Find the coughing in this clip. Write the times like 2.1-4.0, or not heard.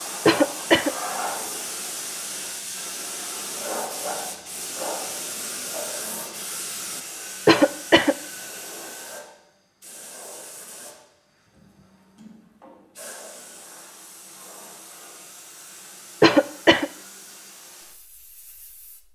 0.2-0.9, 7.5-8.2, 16.2-16.9.